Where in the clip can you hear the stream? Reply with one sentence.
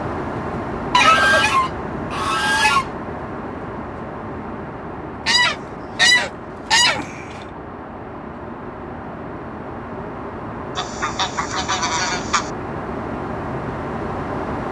You can't hear the stream here.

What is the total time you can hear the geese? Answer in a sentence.
You can hear the geese for 6 seconds altogether.